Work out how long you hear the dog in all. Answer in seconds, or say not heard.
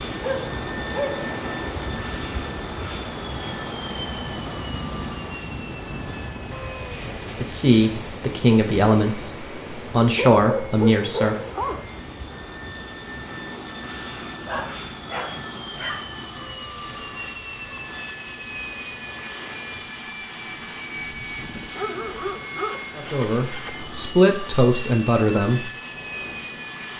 7 s.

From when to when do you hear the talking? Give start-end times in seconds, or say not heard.
7.4-11.3, 22.9-25.7.